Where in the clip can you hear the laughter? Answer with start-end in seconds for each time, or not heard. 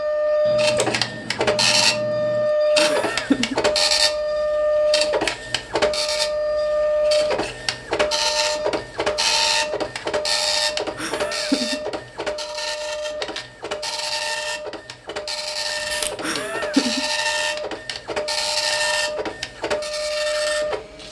2.8-3.5, 10.9-11.8, 16.2-17.1.